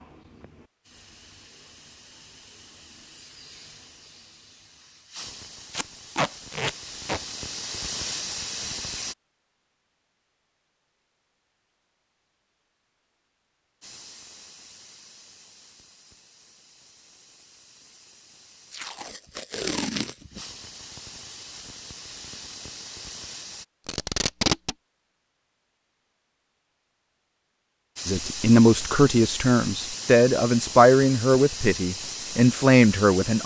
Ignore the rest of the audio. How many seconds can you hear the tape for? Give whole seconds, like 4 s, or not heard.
4 s.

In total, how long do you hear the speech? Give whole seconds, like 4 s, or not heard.
5 s.